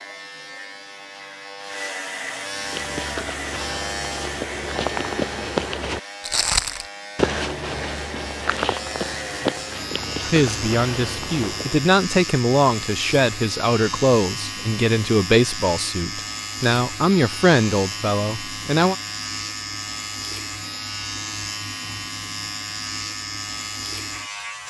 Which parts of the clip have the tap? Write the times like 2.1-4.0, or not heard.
not heard.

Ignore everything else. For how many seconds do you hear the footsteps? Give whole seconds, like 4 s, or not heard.
9 s.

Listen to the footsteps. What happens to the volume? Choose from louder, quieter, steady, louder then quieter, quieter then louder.
louder then quieter.